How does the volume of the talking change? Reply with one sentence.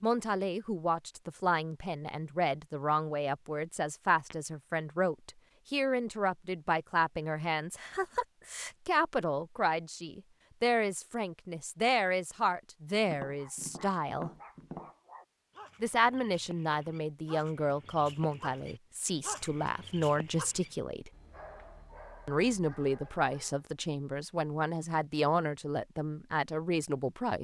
The loudness of the talking stays about the same.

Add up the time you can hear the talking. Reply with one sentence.
You can hear the talking for 25 seconds altogether.